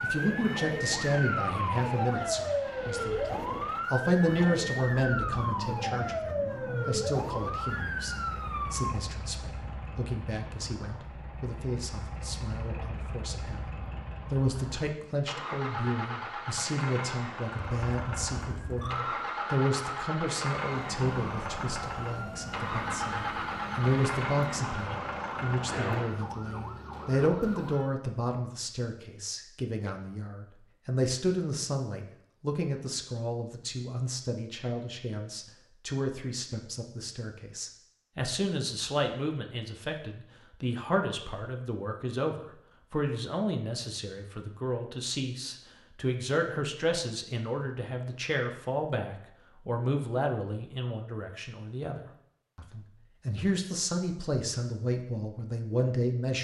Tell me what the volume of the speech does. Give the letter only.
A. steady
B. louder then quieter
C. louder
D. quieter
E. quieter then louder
A.